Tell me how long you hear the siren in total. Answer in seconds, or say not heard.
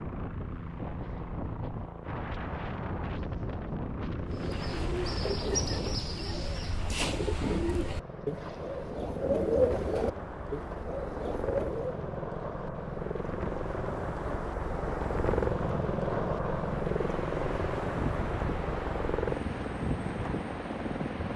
not heard.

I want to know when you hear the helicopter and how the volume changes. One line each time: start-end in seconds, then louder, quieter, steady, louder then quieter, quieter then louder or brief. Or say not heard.
0.0-21.3 louder.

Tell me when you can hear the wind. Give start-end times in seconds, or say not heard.
0.0-21.3.